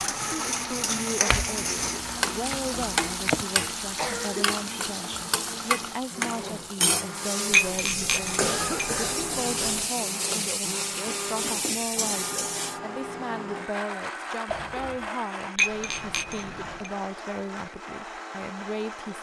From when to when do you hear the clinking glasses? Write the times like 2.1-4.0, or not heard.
1.3-3.5, 7.5-9.8, 15.6-16.9.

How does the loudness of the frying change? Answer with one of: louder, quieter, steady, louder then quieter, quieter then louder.
steady.